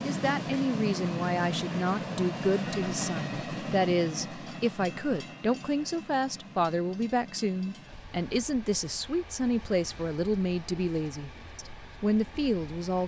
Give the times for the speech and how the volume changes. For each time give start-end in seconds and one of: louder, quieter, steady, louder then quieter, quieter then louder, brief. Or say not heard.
0.0-13.0 steady.